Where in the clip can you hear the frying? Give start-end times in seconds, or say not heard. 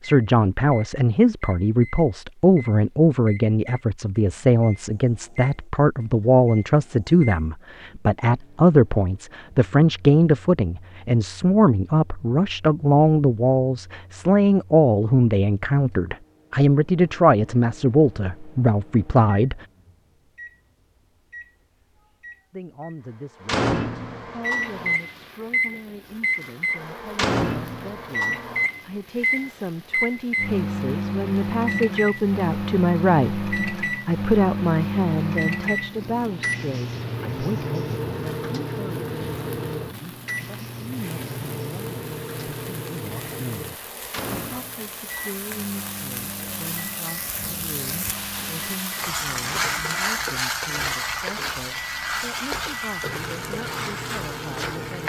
24.4-55.0.